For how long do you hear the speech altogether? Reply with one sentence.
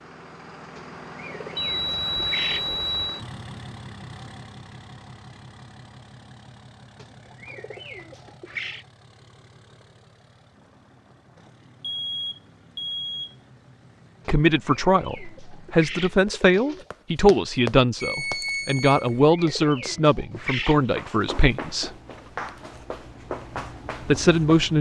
You can hear the speech for 8 seconds altogether.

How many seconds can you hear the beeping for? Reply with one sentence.
The beeping can be heard for 4 seconds in total.